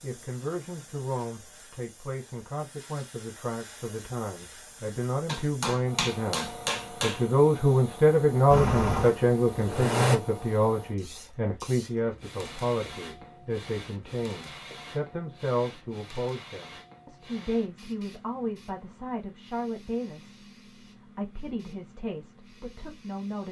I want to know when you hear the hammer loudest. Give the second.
7 s.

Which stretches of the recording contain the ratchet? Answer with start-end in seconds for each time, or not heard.
not heard.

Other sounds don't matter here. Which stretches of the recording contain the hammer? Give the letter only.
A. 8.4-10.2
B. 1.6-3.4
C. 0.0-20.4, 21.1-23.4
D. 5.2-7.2
D.